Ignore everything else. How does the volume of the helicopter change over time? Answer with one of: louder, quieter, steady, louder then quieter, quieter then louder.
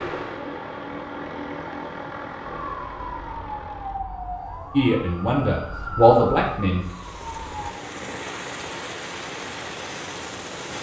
quieter then louder.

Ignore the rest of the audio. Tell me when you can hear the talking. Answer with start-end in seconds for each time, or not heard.
4.8-6.8.